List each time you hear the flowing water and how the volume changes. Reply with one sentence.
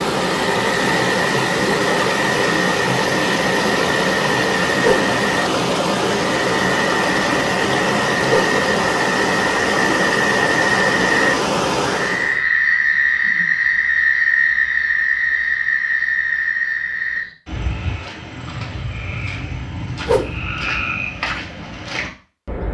The flowing water can be heard from 0.0 to 12.4 s, at a steady volume.